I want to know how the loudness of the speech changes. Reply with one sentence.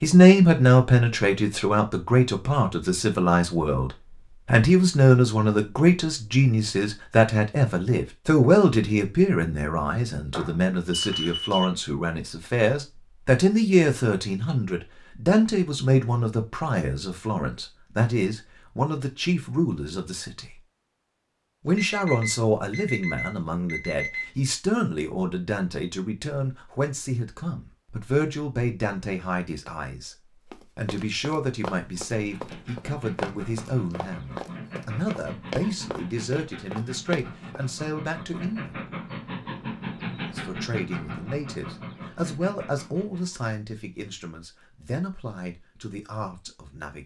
The volume of the speech goes down.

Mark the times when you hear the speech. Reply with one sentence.
You can hear the speech from 0.0 to 20.6 s, from 21.6 to 38.8 s and from 40.3 to 47.0 s.